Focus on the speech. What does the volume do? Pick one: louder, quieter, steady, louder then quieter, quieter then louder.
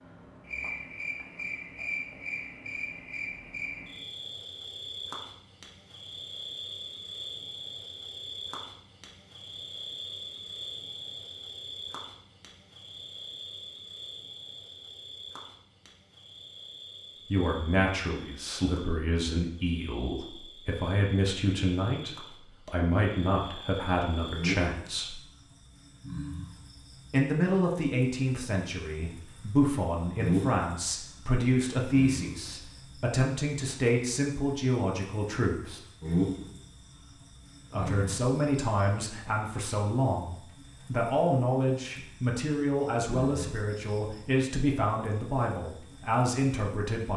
steady.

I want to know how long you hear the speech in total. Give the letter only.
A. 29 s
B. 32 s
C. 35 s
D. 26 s
D.